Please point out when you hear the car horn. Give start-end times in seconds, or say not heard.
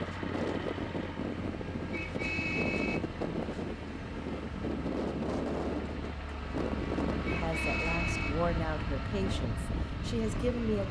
1.9-3.0, 7.2-8.3.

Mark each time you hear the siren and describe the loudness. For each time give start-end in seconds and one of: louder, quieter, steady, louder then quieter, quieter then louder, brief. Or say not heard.
not heard.